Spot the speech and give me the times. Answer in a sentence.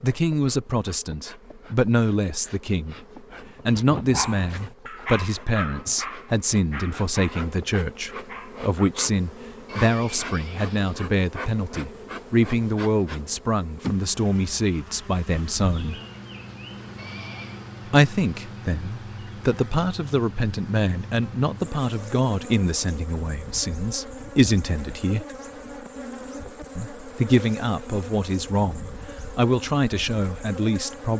You can hear the speech from 0.0 to 3.0 s, from 3.6 to 16.0 s, from 17.9 to 25.2 s and from 26.8 to 31.1 s.